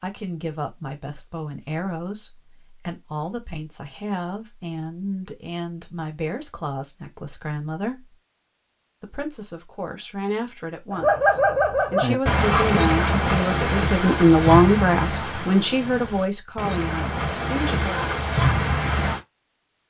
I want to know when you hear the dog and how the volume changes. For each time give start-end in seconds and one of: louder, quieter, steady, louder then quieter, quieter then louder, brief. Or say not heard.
10.9-19.2 quieter then louder.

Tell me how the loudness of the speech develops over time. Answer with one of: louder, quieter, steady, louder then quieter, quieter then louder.
louder.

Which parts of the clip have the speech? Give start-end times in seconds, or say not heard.
0.0-8.2, 9.0-18.1.